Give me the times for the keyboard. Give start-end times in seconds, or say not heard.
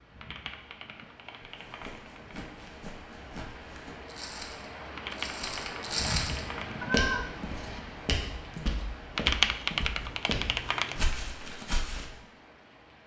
0.2-2.5, 5.0-6.9, 9.2-11.2.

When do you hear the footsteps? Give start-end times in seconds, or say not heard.
1.4-12.1.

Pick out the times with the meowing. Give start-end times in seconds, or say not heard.
6.8-7.8.